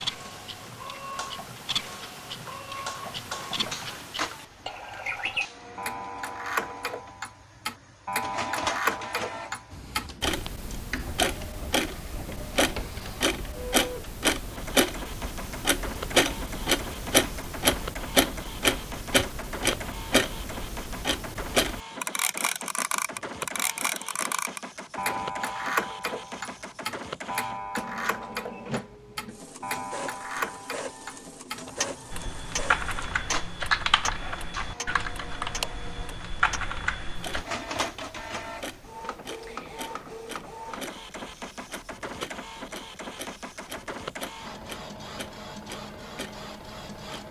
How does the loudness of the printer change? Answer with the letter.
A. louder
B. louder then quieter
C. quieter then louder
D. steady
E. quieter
D.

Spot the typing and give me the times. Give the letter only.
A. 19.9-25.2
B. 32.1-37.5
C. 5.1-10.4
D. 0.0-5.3
B.